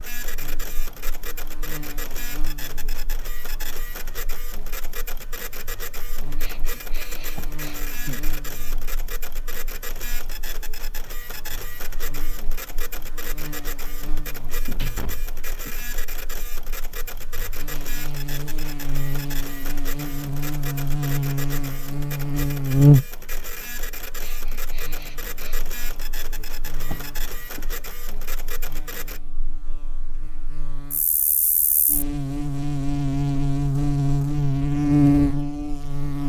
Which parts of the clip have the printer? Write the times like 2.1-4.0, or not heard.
0.0-29.2.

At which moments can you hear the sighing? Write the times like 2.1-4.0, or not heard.
6.2-8.3, 24.1-25.7.